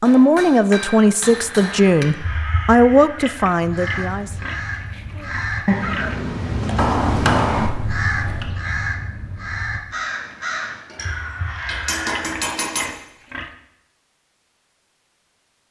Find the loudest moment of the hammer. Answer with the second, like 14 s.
7 s.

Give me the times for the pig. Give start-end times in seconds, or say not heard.
3.1-6.2, 12.1-13.5.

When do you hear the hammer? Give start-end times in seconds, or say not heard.
0.1-2.0, 6.8-8.5, 10.8-12.9.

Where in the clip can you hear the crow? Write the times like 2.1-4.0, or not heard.
1.4-12.2.